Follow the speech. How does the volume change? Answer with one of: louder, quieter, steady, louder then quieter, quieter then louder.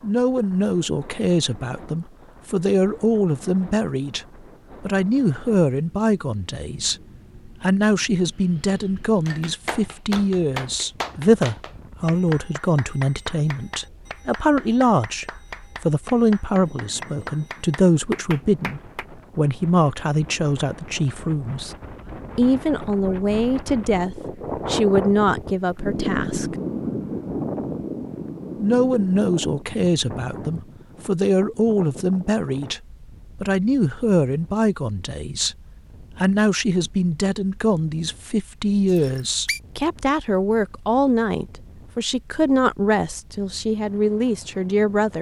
steady.